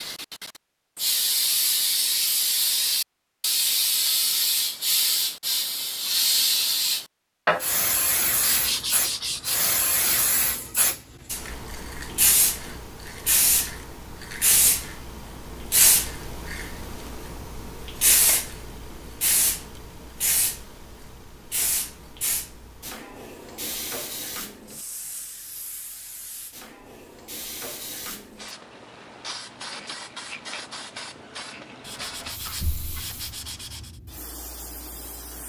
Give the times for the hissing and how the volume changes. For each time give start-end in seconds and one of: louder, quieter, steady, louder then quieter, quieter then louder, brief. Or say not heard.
0.0-35.4 quieter.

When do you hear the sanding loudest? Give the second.
9 s.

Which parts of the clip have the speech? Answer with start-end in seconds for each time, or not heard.
not heard.